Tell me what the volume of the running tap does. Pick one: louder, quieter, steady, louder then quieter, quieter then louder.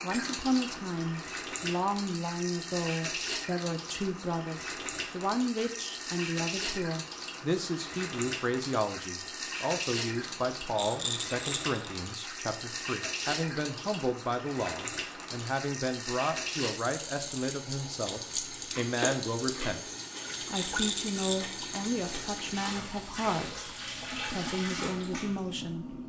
steady.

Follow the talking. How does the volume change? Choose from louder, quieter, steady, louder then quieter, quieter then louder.
steady.